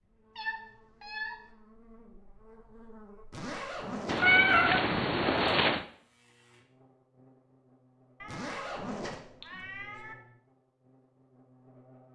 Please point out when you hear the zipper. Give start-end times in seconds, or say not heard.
3.3-4.2, 8.2-9.2.